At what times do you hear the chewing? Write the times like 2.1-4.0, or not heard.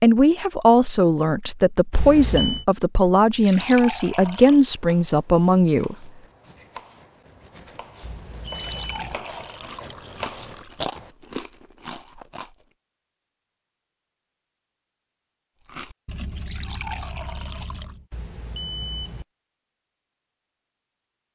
9.5-12.7, 15.7-18.1.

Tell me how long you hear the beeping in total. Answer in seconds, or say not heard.
3 s.